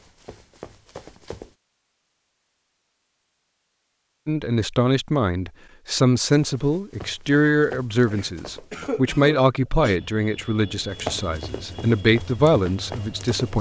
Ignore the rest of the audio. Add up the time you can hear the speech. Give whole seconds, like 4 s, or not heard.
9 s.